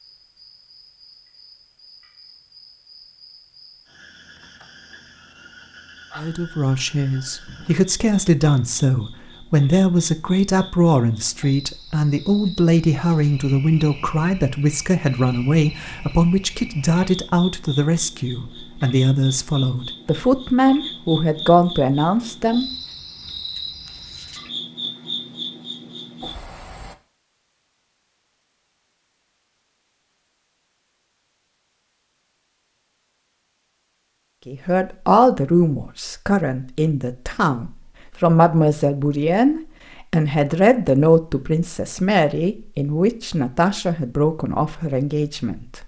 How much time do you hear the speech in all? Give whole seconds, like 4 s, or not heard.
28 s.